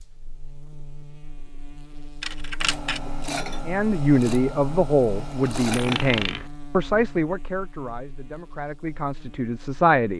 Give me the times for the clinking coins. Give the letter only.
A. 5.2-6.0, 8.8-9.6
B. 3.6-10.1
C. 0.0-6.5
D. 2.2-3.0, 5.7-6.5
D.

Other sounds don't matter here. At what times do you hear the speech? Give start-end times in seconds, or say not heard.
3.6-10.1.